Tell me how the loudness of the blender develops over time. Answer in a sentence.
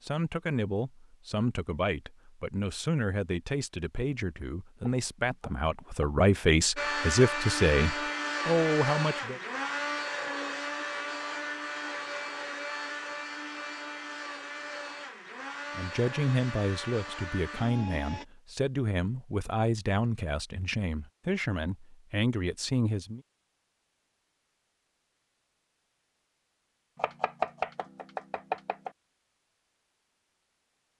The volume of the blender goes down.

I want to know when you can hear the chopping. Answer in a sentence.
You can hear the chopping from 4.8 to 6.2 s and from 26.9 to 28.9 s.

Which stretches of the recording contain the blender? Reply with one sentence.
You can hear the blender from 6.8 to 18.2 s.